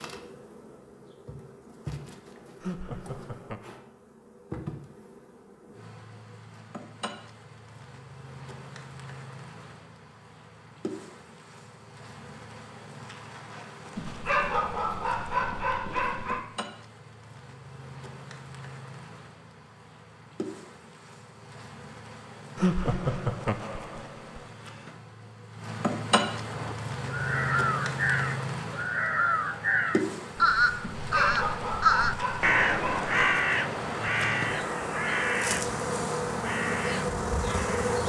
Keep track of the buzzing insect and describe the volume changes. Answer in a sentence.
The loudness of the buzzing insect goes up.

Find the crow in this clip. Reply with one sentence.
The crow can be heard from 26.4 to 38.0 s.